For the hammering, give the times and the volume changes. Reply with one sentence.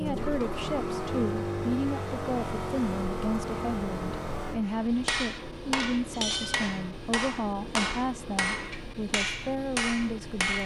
You can hear the hammering from 4.7 to 10.6 s, at a steady volume.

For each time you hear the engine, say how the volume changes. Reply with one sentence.
You can hear the engine from 0.0 to 10.6 s, getting quieter.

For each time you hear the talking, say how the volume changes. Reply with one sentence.
The talking can be heard from 0.0 to 10.6 s, at a steady volume.